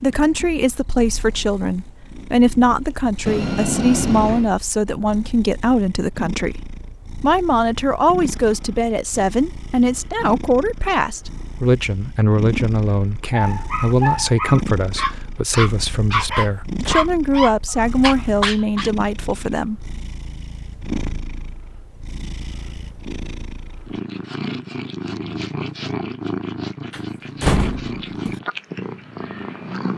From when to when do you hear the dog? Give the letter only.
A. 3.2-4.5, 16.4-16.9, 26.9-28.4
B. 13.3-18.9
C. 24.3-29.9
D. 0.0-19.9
B.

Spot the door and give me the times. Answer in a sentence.
The door can be heard from 3.2 to 4.5 s, from 16.4 to 16.9 s and from 26.9 to 28.4 s.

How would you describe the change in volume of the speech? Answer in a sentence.
The loudness of the speech stays about the same.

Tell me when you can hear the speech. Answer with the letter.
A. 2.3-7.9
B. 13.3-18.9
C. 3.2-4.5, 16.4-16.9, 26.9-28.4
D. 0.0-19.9
D.